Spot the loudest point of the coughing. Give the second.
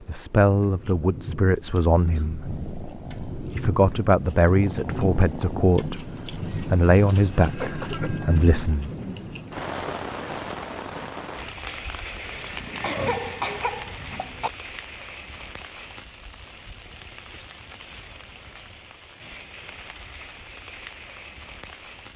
13 s.